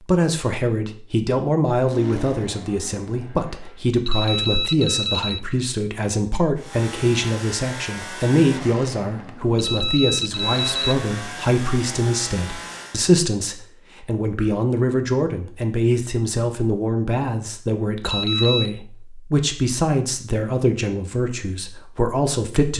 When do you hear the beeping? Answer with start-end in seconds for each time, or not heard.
4.0-5.4, 9.6-11.0, 18.1-18.7.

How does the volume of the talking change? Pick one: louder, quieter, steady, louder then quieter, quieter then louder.
steady.